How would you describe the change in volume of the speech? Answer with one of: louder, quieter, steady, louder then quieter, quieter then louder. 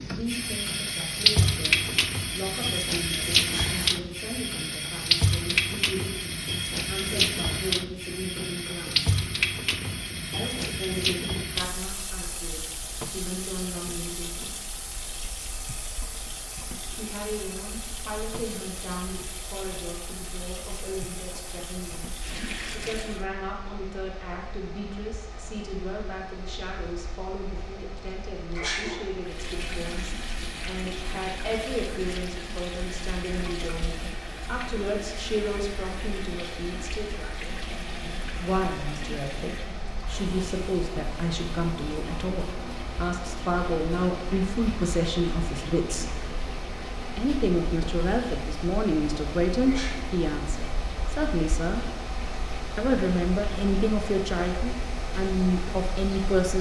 louder.